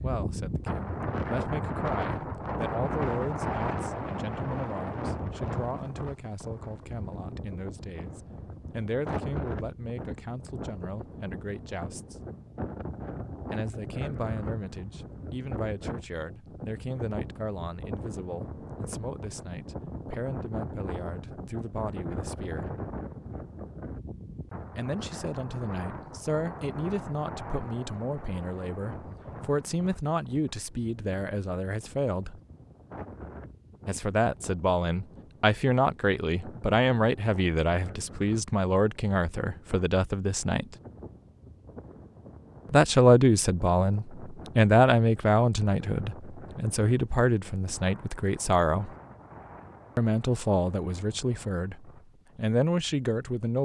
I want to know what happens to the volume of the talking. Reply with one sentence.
The volume of the talking goes up.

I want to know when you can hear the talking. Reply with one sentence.
The talking can be heard from 0.0 to 12.2 s, from 13.4 to 22.8 s, from 24.8 to 32.4 s, from 33.9 to 40.6 s, from 42.7 to 48.9 s and from 50.0 to 53.6 s.